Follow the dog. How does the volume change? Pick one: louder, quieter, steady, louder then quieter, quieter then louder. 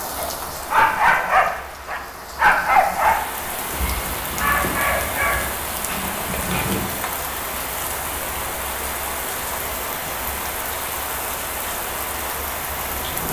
quieter.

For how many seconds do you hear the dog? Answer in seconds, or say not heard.
7 s.